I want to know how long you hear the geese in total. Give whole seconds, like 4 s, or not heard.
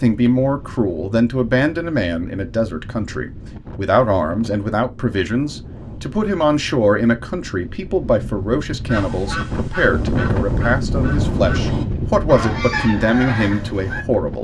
5 s.